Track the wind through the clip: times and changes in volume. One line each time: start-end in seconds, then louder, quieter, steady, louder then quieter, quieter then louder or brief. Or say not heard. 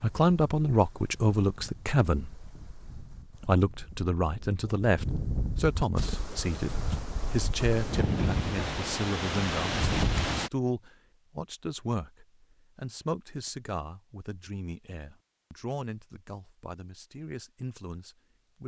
0.0-10.5 louder.